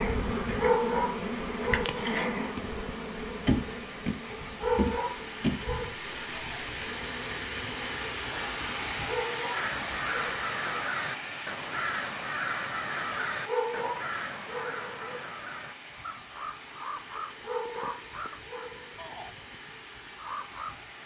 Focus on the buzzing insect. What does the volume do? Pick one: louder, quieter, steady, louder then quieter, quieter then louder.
quieter.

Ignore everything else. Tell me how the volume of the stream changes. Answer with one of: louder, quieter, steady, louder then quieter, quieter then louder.
louder then quieter.